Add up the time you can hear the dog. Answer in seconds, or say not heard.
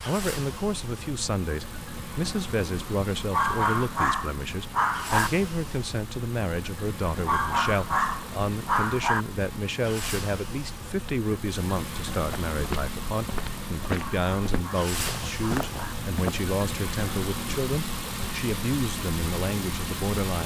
6 s.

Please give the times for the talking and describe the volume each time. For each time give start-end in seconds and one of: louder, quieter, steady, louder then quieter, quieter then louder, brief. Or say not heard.
0.0-20.4 steady.